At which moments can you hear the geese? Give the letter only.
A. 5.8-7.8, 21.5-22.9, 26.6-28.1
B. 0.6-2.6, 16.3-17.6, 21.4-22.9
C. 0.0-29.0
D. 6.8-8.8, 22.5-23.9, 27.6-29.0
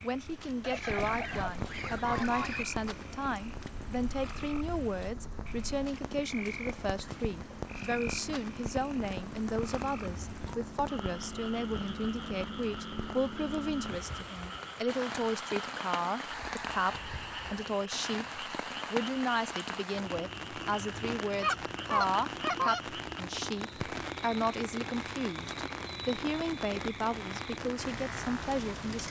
B.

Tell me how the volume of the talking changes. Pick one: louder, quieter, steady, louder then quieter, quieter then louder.
steady.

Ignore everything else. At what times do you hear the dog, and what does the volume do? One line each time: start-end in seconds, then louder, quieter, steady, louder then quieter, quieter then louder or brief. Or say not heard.
not heard.